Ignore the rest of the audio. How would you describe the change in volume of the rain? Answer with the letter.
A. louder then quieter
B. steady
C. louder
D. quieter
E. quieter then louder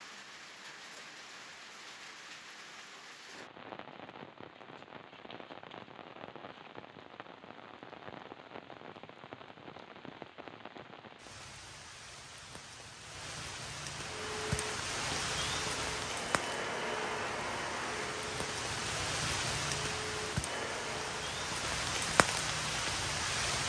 C.